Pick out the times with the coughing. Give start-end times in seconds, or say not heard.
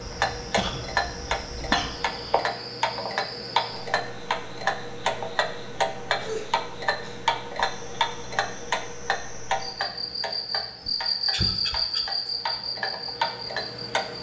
0.6-2.5, 6.2-7.3, 10.8-12.1.